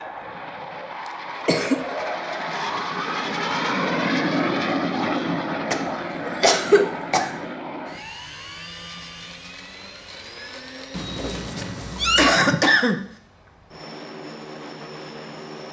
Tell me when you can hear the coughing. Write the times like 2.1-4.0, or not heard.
1.4-1.9, 5.7-7.5, 12.2-13.0.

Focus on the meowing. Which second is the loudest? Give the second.
12 s.